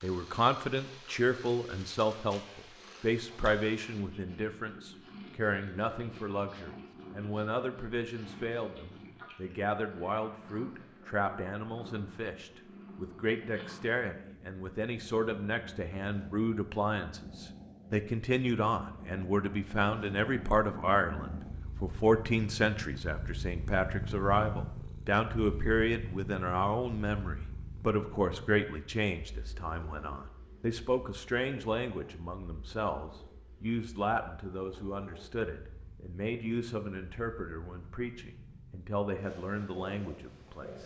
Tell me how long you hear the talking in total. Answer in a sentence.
The talking can be heard for 41 seconds in total.